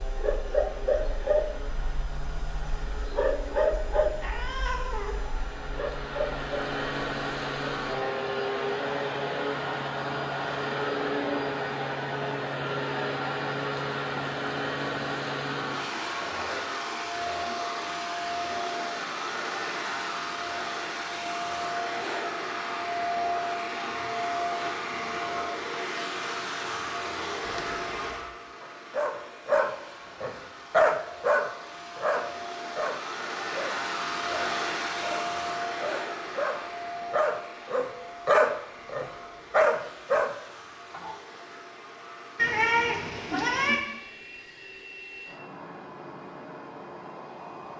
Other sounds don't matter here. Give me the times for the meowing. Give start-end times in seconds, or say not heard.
4.2-5.2, 27.4-28.1, 42.4-43.8.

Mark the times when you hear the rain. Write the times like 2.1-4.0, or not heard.
not heard.